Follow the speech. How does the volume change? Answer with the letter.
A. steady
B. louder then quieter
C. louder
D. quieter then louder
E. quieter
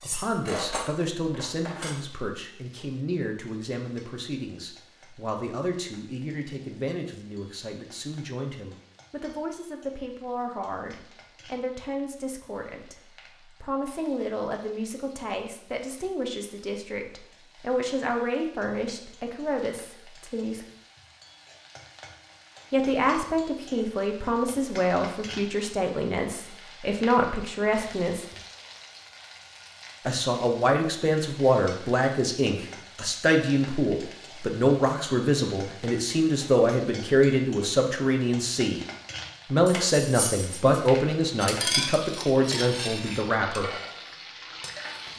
C.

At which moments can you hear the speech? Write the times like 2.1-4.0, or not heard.
0.0-12.9, 13.6-20.6, 22.7-28.2, 30.1-38.8, 39.5-43.7.